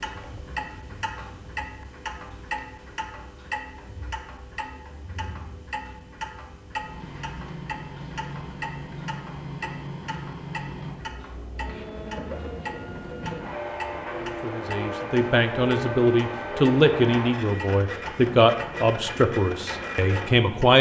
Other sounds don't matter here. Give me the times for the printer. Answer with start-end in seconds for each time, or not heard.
6.8-20.6.